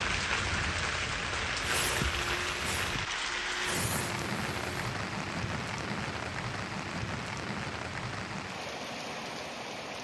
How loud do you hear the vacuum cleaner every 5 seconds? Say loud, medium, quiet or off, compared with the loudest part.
loud, off.